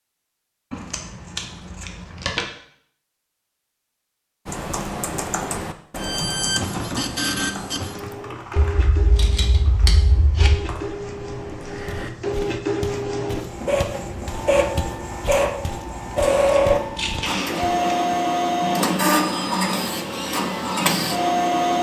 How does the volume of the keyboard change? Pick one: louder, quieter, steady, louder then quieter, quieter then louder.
quieter then louder.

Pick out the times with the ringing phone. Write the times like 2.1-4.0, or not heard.
not heard.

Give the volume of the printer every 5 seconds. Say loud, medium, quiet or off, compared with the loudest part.
off, medium, medium, loud, loud.